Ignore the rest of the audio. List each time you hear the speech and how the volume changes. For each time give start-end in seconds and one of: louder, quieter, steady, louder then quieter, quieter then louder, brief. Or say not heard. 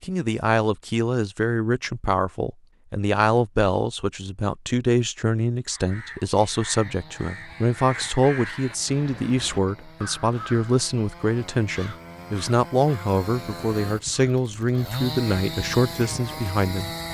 0.0-16.9 steady.